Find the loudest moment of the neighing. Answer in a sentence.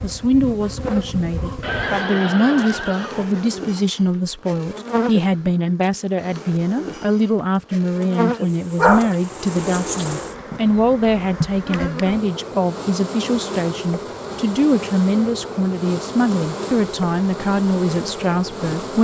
The volume of the neighing peaks at 2 seconds.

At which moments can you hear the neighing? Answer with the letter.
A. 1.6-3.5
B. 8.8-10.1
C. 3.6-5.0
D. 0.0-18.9
A.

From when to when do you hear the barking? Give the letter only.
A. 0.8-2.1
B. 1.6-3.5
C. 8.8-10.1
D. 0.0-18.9
C.